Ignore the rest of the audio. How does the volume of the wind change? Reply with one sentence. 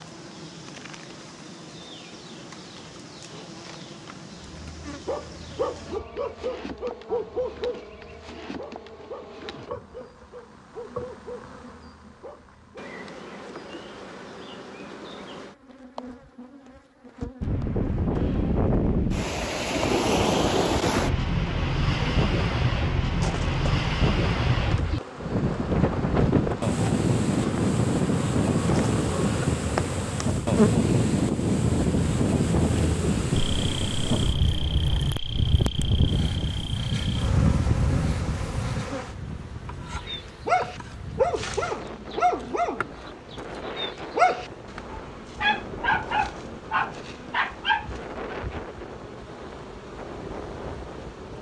The volume of the wind goes down.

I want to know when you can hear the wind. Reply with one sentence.
The wind can be heard from 17.4 to 51.3 s.